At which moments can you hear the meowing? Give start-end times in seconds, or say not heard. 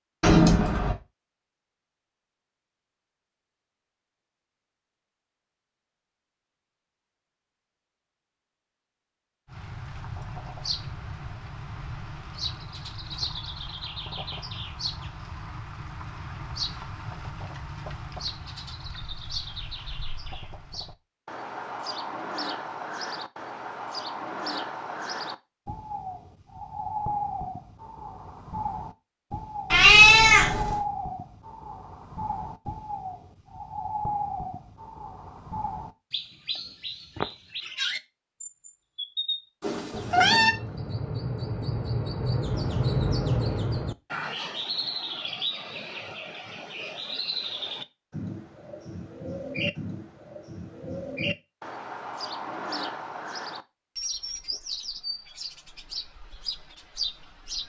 0.2-0.9, 29.7-30.8, 39.6-40.5.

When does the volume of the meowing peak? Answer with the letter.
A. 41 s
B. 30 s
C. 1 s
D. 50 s
B.